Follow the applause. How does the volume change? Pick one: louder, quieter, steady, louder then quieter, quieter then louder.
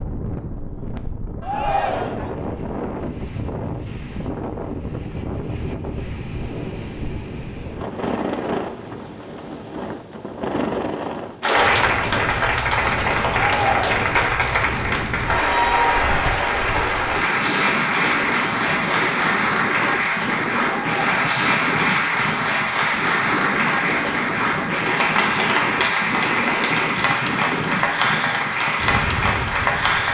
steady.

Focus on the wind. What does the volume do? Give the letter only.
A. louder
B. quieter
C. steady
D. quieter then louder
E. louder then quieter
C.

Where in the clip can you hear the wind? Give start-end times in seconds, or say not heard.
0.0-30.0.